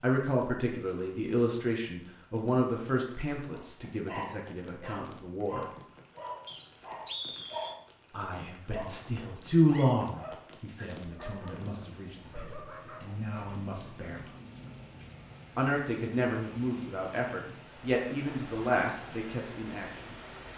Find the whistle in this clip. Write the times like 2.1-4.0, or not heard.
6.5-7.8.